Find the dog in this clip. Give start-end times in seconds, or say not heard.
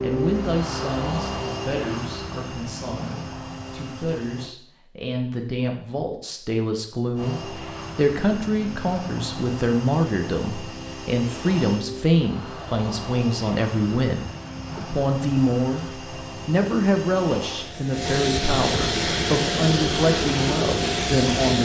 not heard.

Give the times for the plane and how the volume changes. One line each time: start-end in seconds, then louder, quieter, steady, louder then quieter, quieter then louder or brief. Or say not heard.
0.0-4.5 quieter
7.2-21.5 louder.